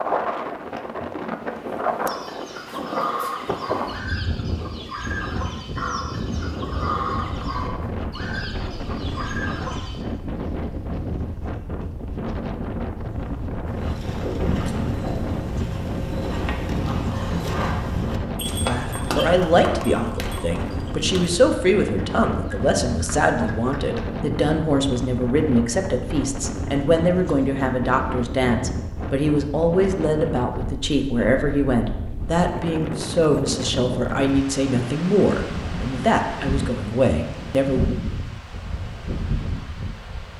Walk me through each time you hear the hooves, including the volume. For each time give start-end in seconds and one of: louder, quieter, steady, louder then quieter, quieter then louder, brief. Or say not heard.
13.7-24.1 quieter.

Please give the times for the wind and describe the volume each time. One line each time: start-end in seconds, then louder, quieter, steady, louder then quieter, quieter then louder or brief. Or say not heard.
0.0-40.3 steady.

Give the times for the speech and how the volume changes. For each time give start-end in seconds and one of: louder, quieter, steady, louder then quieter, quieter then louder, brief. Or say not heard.
18.6-38.0 steady.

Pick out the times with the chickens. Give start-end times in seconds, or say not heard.
2.0-10.1.